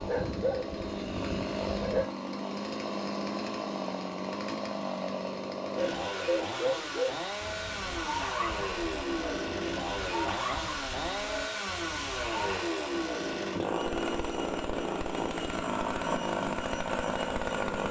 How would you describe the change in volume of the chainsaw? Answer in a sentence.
The loudness of the chainsaw stays about the same.